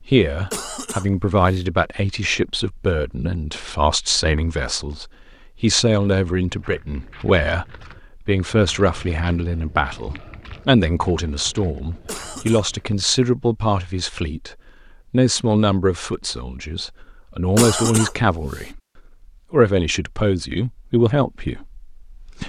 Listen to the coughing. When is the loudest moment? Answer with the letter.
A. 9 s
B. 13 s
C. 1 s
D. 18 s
D.